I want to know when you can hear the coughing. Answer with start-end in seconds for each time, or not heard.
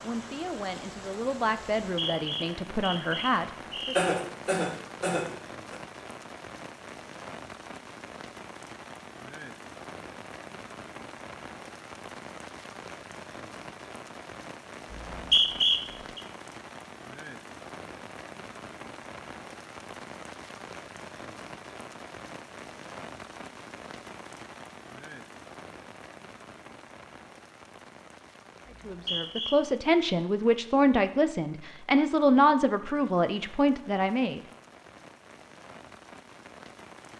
4.0-5.8.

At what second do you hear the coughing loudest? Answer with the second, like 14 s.
4 s.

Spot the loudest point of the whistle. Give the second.
15 s.